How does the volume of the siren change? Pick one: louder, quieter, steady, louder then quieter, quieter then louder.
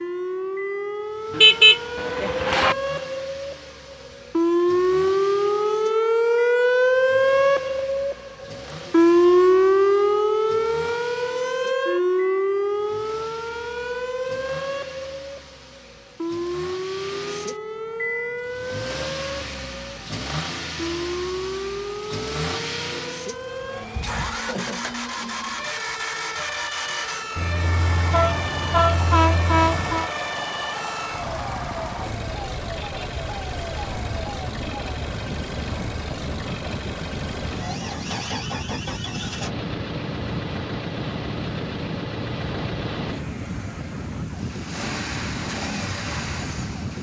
quieter.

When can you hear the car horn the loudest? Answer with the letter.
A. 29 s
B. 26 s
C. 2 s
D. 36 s
C.